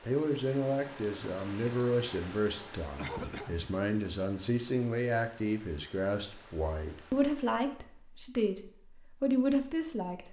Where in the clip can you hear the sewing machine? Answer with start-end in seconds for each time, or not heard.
not heard.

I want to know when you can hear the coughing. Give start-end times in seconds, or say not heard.
3.0-3.7.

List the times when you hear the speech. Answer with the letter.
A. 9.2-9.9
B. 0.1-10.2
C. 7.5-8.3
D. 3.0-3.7
B.